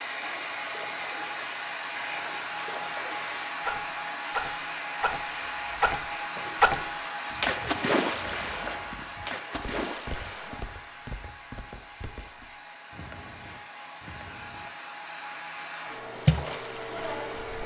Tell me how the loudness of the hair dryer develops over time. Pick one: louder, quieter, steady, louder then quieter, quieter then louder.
quieter then louder.